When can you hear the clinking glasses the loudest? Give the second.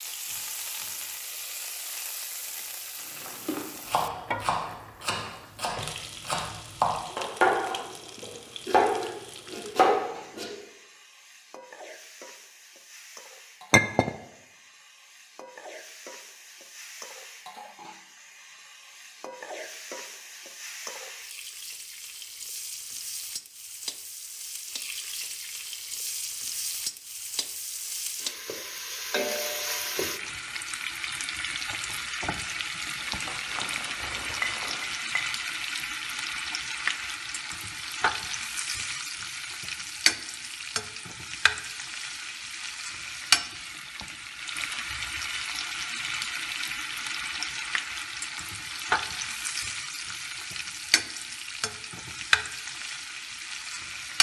14 s.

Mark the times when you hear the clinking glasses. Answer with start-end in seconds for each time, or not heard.
13.7-14.1, 34.4-35.4.